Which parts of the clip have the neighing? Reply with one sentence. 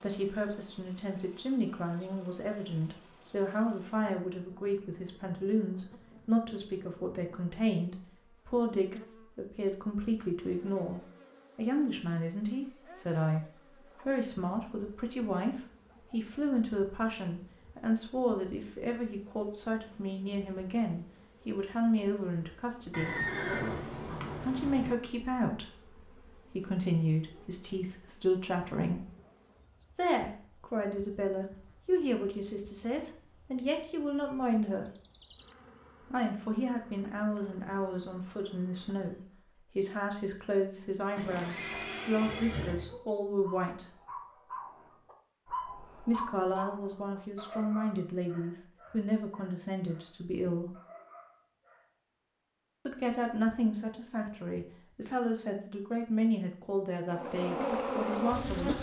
You can hear the neighing from 22.9 to 24.9 s and from 41.1 to 42.9 s.